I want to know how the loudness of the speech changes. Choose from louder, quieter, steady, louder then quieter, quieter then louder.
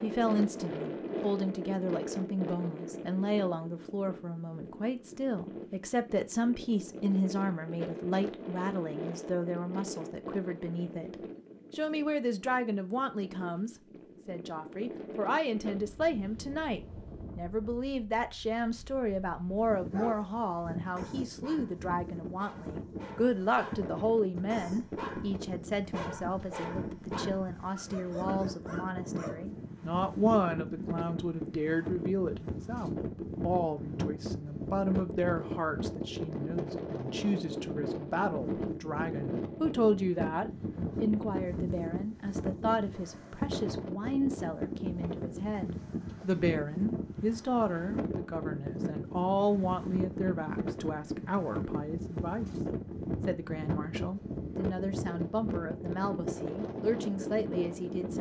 steady.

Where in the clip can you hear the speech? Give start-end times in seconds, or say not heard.
0.0-11.2, 11.8-52.5, 53.2-58.1.